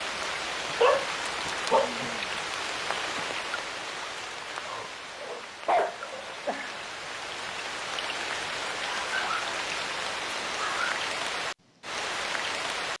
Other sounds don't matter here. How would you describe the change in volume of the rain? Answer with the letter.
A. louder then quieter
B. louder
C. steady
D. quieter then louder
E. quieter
D.